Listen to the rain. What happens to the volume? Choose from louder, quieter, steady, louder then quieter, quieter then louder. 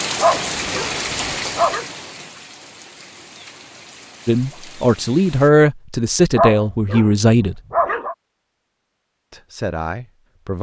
quieter.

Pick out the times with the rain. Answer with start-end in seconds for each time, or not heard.
0.0-5.5.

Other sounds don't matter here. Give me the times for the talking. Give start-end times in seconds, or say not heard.
4.2-7.5, 9.3-10.5.